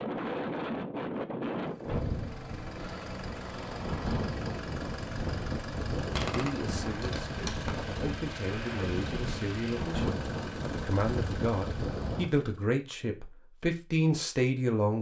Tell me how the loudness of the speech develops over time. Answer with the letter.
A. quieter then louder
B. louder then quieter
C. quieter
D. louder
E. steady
D.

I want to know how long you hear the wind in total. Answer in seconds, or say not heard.
12 s.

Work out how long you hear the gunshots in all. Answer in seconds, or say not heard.
2 s.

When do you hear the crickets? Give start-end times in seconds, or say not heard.
not heard.